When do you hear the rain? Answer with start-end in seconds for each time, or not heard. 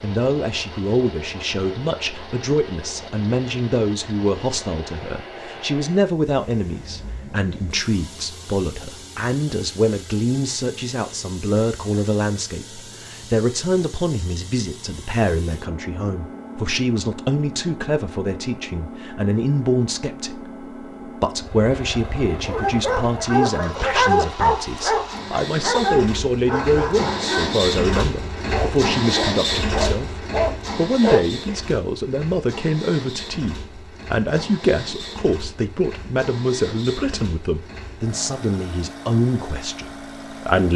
not heard.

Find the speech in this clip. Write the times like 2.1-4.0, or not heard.
0.0-40.7.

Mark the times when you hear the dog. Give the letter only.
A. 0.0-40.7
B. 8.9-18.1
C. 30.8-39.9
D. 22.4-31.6
D.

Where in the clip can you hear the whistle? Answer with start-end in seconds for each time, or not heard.
not heard.